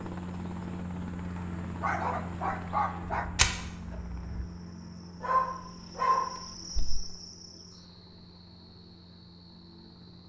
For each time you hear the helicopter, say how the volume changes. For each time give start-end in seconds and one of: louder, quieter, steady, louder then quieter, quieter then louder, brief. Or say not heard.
0.0-10.2 quieter.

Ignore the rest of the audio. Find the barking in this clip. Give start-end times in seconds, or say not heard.
1.4-3.2, 5.2-7.0.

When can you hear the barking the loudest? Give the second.
6 s.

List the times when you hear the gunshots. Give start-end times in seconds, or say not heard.
3.2-4.5.